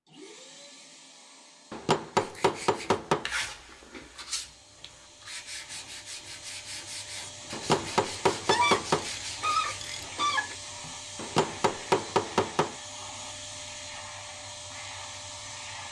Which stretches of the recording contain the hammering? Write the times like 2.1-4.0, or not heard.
1.7-3.3, 7.5-9.1, 11.2-12.8.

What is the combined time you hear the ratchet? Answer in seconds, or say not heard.
2 s.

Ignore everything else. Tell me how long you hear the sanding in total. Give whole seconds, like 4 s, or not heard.
8 s.